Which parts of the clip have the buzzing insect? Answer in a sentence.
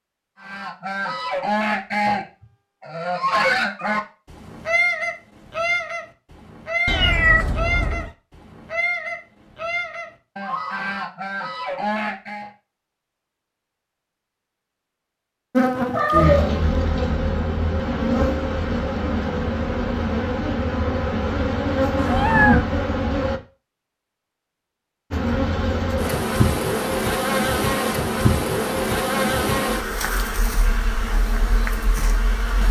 The buzzing insect can be heard from 15.5 to 23.4 s and from 25.1 to 32.6 s.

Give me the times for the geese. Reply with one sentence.
The geese can be heard from 0.4 to 12.5 s.